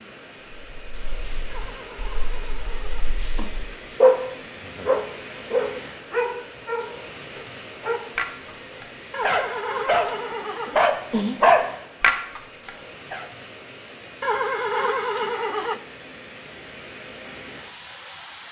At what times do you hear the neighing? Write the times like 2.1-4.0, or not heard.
1.5-3.5, 9.1-10.8, 14.2-15.8.